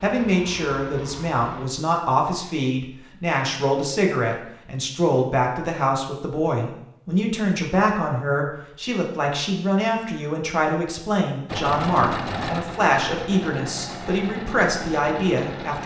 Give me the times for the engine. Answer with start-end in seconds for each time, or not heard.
0.0-1.6, 11.4-15.8.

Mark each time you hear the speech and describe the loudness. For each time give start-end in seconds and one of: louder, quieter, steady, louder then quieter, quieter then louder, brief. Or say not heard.
0.0-15.8 steady.